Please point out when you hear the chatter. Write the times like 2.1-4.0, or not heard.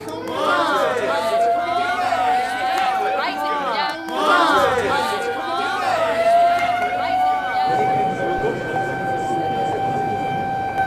0.1-10.8.